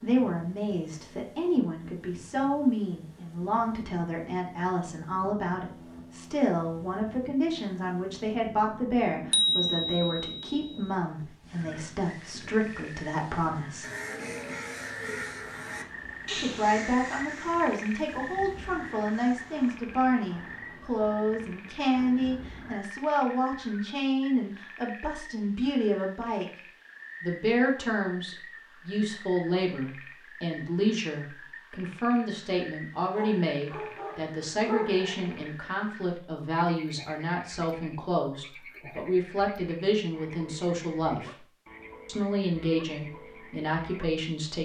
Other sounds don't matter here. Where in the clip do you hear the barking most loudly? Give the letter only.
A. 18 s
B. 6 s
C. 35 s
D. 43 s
C.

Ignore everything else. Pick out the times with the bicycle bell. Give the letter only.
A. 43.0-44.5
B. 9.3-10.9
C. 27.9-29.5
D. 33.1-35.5
B.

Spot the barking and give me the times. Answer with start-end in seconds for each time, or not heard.
33.1-35.5.